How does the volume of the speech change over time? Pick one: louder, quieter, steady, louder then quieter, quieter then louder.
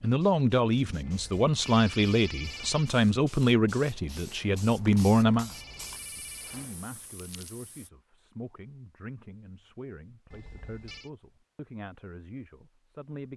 quieter.